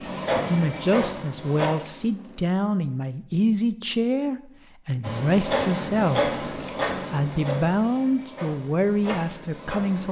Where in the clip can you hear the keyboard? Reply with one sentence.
You can't hear the keyboard here.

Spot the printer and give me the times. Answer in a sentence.
You can hear the printer from 0.0 to 1.7 s and from 5.0 to 10.0 s.